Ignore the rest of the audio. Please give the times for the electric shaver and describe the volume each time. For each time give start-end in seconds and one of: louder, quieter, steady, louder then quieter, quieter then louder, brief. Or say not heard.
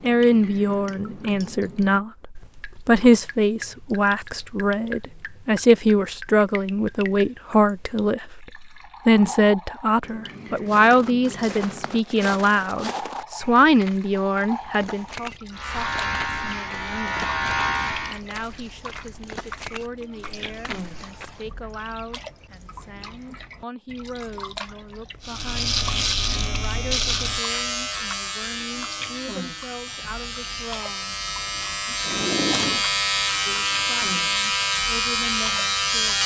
15.6-18.2 brief
25.2-36.2 quieter then louder.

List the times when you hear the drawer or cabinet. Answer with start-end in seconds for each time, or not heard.
32.0-32.9.